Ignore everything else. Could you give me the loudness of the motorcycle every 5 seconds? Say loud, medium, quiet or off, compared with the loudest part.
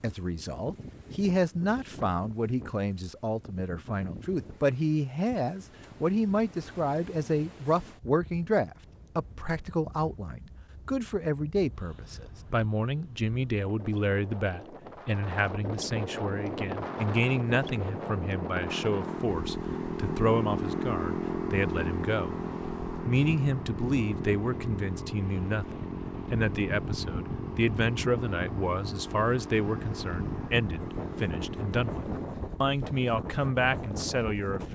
off, off, off, loud, loud, medium, medium.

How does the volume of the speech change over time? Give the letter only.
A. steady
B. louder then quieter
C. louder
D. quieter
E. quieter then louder
A.